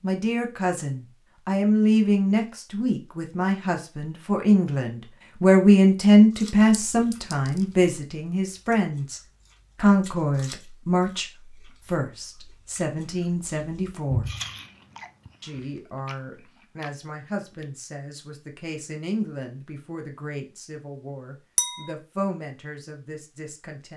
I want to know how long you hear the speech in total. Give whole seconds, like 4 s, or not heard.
23 s.